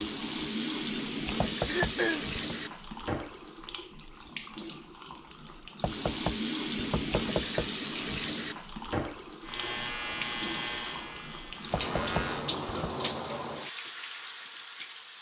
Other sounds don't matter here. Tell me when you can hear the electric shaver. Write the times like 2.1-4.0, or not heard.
9.4-12.5.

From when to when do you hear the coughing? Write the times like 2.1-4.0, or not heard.
1.6-2.2.